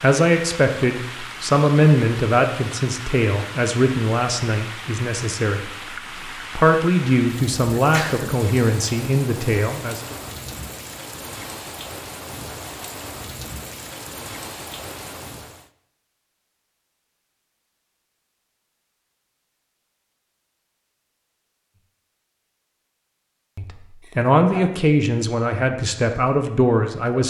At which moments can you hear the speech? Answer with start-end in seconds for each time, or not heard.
0.0-10.2, 23.6-27.2.